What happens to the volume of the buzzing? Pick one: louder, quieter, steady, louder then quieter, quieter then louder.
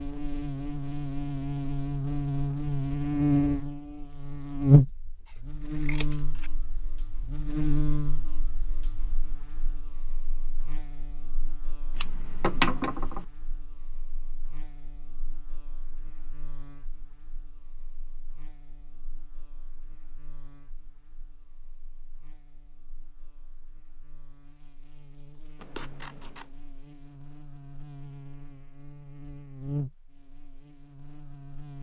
quieter then louder.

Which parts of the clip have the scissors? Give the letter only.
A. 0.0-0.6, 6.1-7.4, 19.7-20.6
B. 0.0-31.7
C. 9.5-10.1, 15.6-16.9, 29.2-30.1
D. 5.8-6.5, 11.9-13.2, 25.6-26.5
D.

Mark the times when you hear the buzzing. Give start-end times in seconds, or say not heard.
0.0-31.7.